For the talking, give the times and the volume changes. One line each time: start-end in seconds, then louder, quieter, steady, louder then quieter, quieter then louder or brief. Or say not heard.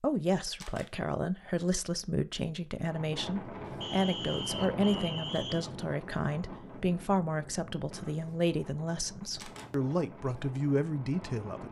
0.0-11.6 steady.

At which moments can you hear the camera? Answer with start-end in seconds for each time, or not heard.
0.5-0.9, 9.2-9.7.